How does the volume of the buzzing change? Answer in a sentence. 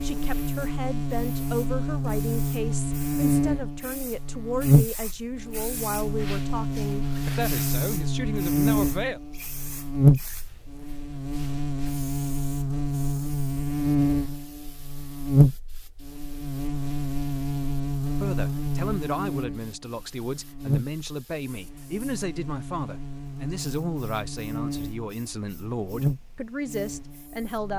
The volume of the buzzing goes down.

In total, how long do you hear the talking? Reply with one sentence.
You can hear the talking for 19 seconds altogether.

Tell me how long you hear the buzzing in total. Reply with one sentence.
You can hear the buzzing for 28 seconds altogether.